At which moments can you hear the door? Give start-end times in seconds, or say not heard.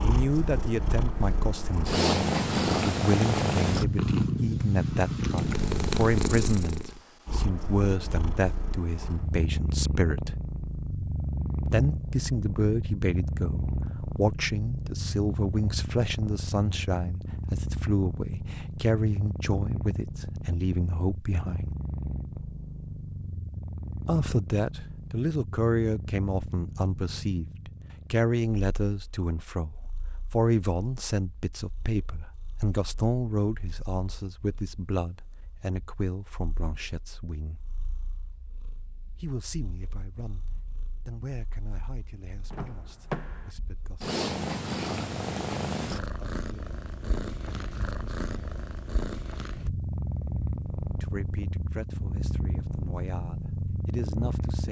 42.5-43.5.